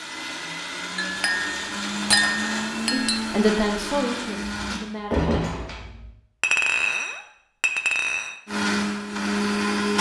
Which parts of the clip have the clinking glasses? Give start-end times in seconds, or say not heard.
0.9-3.2, 6.4-8.3.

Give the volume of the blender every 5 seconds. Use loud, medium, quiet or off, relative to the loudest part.
medium, loud.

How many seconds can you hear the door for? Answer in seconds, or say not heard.
2 s.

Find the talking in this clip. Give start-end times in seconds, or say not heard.
2.9-5.3.